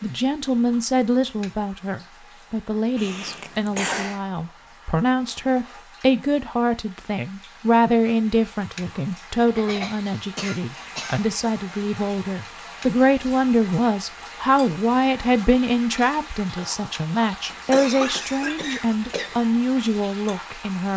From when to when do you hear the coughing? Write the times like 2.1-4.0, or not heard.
3.0-4.2, 9.6-11.4, 17.4-19.4.